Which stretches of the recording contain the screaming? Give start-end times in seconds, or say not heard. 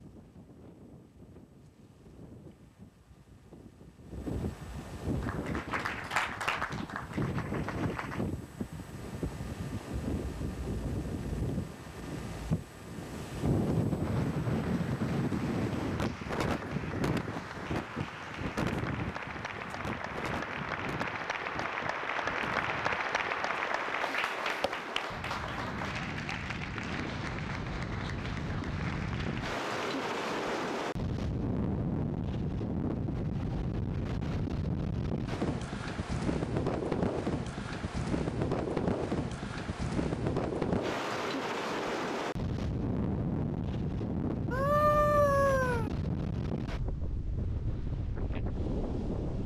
44.5-45.9.